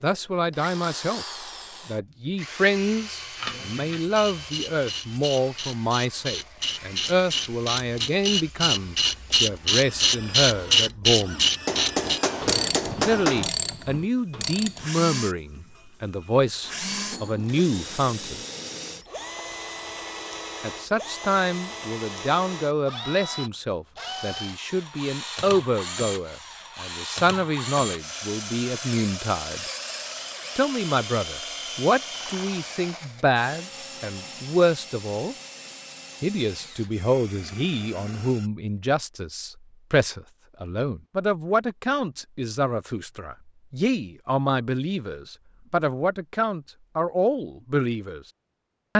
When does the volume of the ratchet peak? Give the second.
11 s.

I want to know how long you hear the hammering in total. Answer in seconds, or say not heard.
2 s.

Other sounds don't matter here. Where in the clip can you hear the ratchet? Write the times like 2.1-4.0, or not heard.
3.4-14.9.